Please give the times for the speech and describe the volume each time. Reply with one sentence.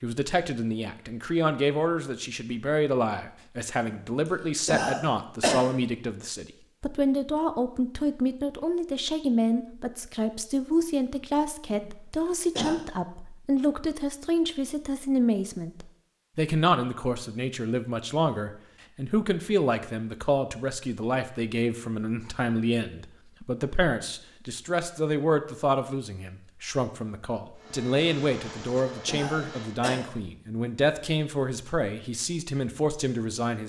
You can hear the speech from 0.0 to 33.6 s, at a steady volume.